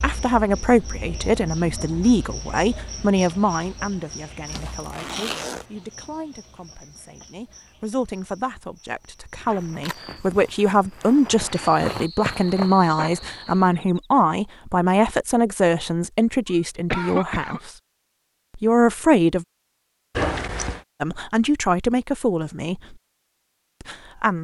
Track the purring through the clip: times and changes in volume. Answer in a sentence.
You can't hear the purring here.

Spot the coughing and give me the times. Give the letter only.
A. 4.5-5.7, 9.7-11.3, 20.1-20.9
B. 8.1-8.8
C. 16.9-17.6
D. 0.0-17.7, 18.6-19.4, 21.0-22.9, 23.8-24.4
C.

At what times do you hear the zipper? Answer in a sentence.
You can hear the zipper from 4.5 to 5.7 s, from 9.7 to 11.3 s and from 20.1 to 20.9 s.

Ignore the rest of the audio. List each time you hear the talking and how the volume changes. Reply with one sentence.
The talking can be heard from 0.0 to 17.7 s, getting quieter then louder; briefly from 18.6 to 19.4 s; briefly from 21.0 to 22.9 s; and briefly from 23.8 to 24.4 s.